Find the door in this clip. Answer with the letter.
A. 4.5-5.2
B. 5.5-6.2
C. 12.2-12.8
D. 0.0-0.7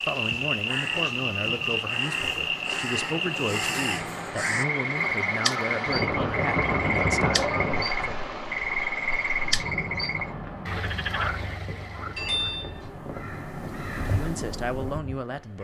C.